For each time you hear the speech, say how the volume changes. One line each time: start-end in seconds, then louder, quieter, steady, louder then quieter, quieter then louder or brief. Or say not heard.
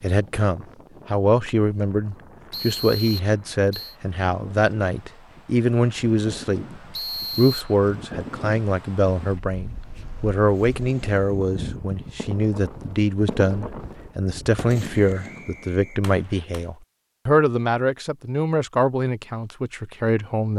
0.0-20.5 steady.